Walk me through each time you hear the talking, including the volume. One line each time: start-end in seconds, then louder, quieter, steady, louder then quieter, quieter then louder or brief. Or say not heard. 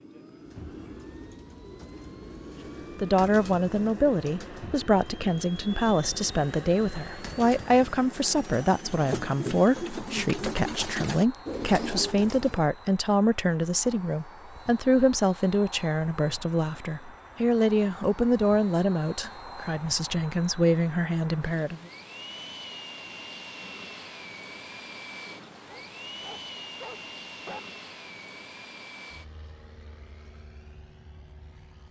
3.0-21.8 steady.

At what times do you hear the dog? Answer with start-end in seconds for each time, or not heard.
25.6-27.6.